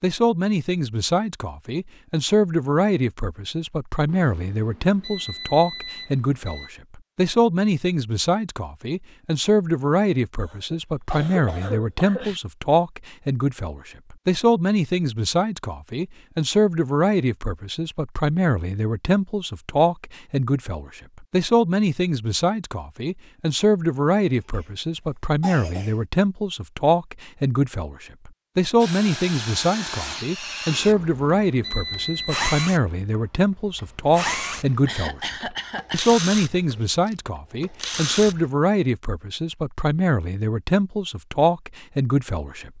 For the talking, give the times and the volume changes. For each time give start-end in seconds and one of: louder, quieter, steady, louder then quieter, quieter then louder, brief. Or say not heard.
0.0-42.7 steady.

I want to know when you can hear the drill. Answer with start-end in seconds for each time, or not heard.
28.8-38.5.